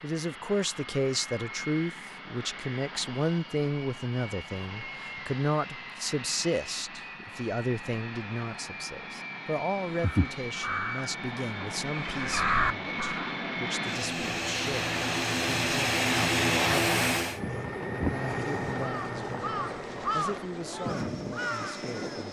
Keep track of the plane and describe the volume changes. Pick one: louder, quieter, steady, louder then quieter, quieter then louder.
louder then quieter.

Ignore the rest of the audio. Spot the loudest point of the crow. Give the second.
13 s.